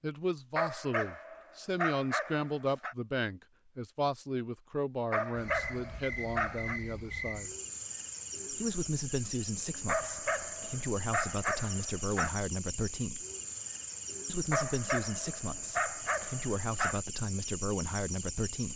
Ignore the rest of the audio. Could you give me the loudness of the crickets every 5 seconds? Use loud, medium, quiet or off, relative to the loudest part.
off, loud, loud, loud.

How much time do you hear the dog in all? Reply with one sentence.
You can hear the dog for 9 seconds altogether.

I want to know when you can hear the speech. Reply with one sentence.
The speech can be heard from 0.0 to 7.5 s, from 8.5 to 13.2 s and from 14.2 to 18.7 s.